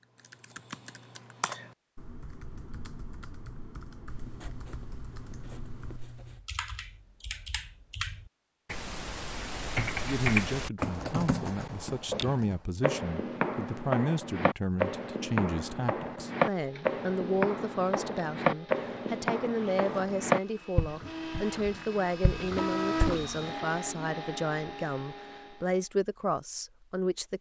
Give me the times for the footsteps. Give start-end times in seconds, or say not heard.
12.1-23.2.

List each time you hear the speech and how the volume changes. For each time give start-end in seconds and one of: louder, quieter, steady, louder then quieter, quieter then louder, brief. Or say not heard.
10.0-27.3 steady.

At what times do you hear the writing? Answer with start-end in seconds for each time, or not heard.
4.0-6.4.